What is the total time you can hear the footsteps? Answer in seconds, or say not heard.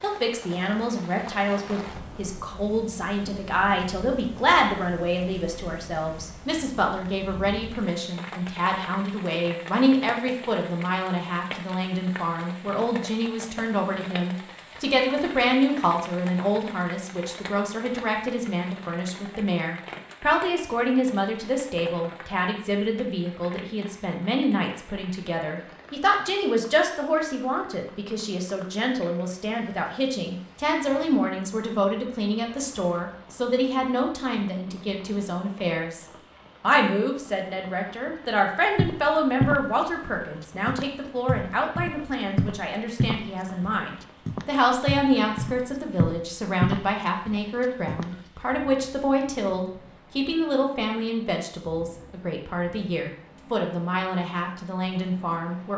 9 s.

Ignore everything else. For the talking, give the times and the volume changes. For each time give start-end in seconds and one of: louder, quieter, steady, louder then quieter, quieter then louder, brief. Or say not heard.
0.0-55.7 steady.